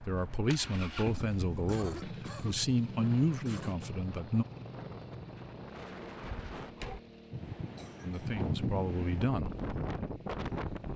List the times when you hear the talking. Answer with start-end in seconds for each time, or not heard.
0.0-4.5, 8.0-9.6.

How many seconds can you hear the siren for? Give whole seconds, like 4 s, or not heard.
not heard.